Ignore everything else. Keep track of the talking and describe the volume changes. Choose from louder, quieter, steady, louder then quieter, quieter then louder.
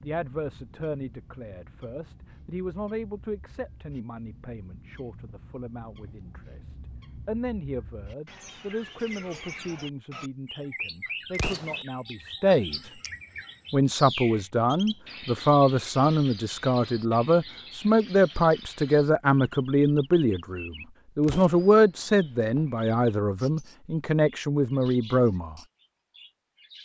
louder.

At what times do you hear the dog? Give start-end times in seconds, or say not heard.
not heard.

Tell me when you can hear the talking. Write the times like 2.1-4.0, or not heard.
0.0-12.8, 13.7-25.6.